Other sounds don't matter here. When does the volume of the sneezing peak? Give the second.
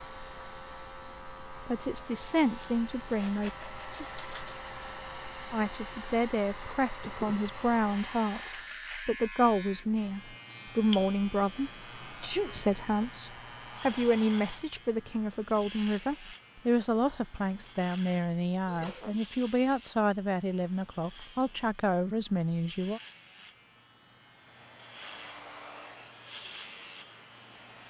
12 s.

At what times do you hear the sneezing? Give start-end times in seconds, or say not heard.
3.1-4.5, 11.5-13.1, 18.6-19.2.